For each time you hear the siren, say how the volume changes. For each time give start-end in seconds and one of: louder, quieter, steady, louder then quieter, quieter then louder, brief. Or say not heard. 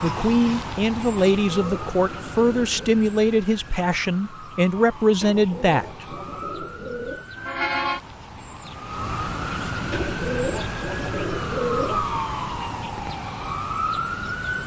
0.0-14.6 quieter then louder.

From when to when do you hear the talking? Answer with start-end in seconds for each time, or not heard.
0.0-6.2.